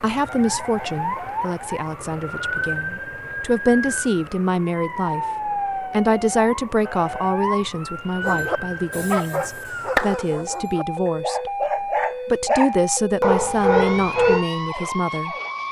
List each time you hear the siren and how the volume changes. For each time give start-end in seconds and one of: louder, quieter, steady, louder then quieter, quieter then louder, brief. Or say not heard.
0.0-15.6 steady.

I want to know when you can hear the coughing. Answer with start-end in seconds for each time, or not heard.
not heard.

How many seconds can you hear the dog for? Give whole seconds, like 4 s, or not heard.
6 s.